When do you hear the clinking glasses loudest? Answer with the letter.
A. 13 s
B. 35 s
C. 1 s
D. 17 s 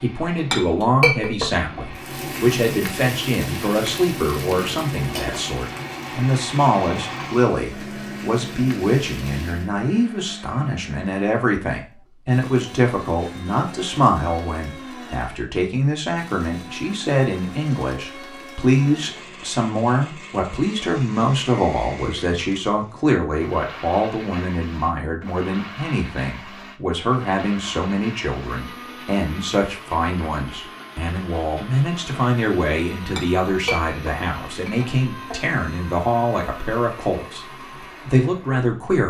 C.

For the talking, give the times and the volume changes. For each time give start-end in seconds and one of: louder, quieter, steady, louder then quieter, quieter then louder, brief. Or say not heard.
0.0-37.5 steady
38.0-39.0 brief.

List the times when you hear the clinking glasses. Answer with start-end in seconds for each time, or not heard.
0.3-1.9, 33.0-35.5.